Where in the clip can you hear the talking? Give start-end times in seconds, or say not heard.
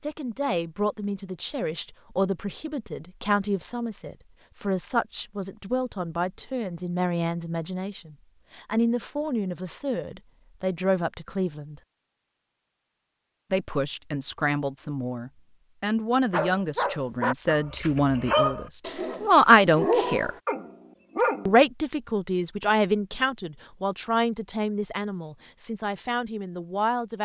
0.0-11.8, 13.5-20.3, 21.4-27.1.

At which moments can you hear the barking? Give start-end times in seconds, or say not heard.
16.3-21.6.